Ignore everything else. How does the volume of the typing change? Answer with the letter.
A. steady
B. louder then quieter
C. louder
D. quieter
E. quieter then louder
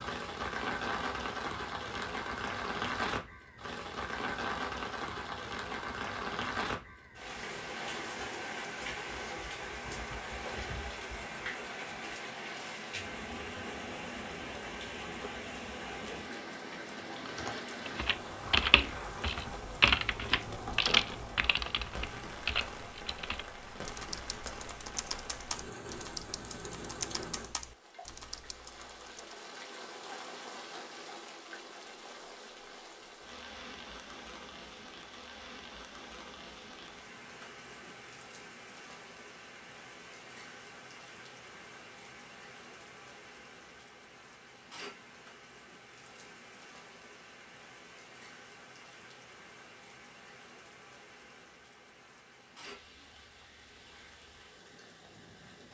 D.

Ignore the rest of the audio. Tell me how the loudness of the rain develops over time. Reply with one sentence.
The loudness of the rain goes down.